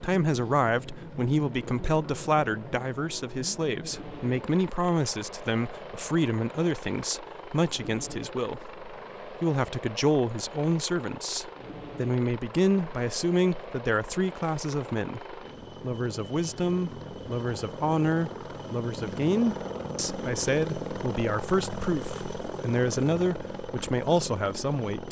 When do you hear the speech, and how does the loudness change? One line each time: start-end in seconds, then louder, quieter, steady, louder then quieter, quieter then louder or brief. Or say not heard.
0.0-25.0 steady.